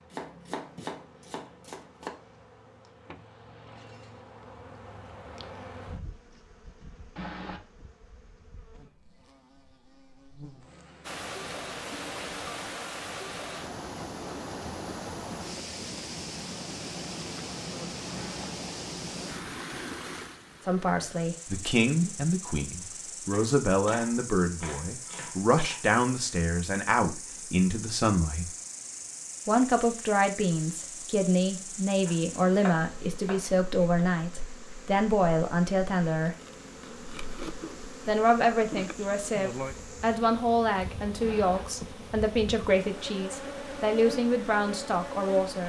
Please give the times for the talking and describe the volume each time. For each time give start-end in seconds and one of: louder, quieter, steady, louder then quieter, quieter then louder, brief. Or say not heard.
20.6-28.5 steady
29.4-36.4 steady
38.0-45.6 steady.